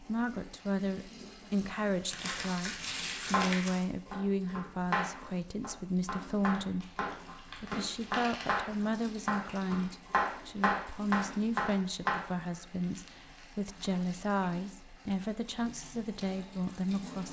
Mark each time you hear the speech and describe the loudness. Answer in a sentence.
You can hear the speech from 0.0 to 17.2 s, at a steady volume.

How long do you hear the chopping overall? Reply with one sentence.
You can hear the chopping for 9 seconds altogether.